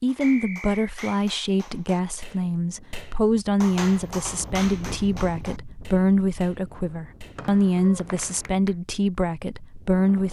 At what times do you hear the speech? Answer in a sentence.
The speech can be heard from 0.0 to 10.2 s.